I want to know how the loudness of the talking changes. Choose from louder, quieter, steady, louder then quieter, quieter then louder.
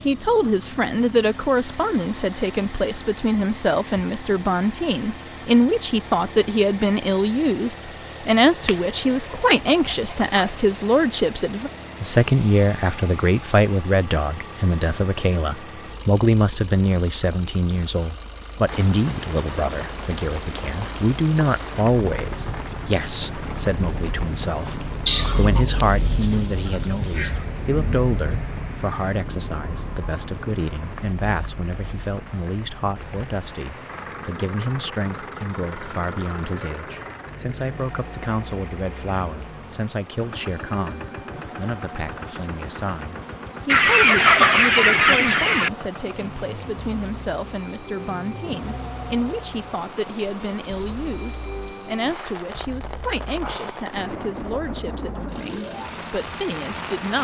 quieter.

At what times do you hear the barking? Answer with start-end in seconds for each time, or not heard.
not heard.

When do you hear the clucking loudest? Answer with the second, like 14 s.
44 s.